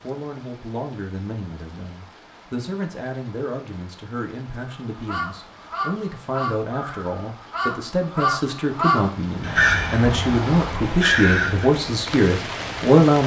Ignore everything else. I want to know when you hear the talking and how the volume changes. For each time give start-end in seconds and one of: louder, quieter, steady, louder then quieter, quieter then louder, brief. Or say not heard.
0.0-13.2 louder.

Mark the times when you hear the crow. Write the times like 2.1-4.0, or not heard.
5.0-11.7.